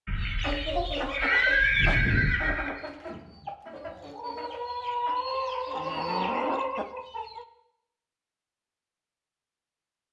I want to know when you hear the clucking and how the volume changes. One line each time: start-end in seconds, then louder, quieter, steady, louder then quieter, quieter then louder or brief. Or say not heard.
0.1-7.5 quieter then louder.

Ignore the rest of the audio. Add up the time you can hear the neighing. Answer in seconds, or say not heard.
3 s.